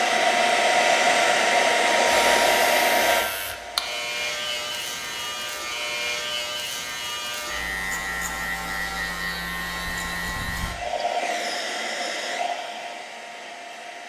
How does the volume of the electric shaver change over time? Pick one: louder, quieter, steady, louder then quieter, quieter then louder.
steady.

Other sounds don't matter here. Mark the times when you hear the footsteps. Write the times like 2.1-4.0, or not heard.
not heard.